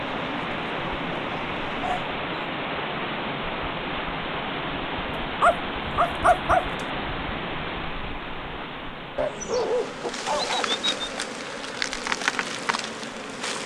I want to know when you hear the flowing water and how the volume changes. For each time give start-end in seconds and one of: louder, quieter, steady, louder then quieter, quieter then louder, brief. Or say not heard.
0.0-13.6 quieter.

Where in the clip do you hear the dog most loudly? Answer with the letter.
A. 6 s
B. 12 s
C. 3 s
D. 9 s
A.